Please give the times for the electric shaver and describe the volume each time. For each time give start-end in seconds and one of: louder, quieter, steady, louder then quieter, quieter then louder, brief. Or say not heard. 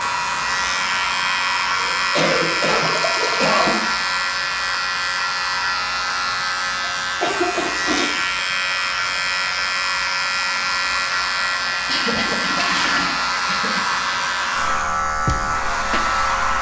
0.0-16.5 steady.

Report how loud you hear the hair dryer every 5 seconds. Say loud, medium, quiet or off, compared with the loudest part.
loud, medium, loud, loud.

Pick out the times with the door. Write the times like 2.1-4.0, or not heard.
not heard.